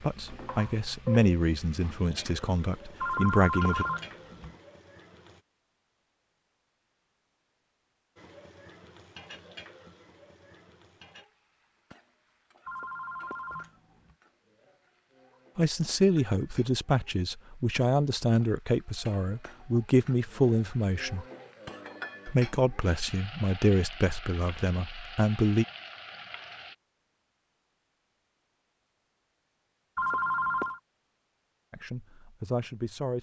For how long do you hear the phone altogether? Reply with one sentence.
You can hear the phone for 4 seconds altogether.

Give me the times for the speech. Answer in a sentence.
The speech can be heard from 0.0 to 3.9 s, from 15.6 to 21.2 s, from 22.2 to 25.6 s and from 31.7 to 33.1 s.